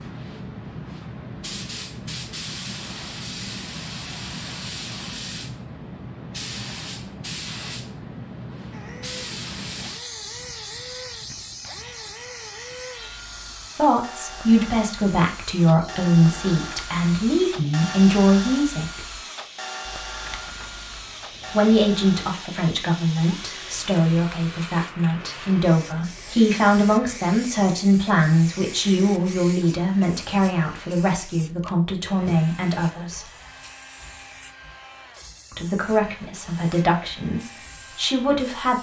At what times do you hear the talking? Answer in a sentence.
You can hear the talking from 13.8 to 19.1 s, from 21.5 to 33.3 s and from 35.5 to 38.7 s.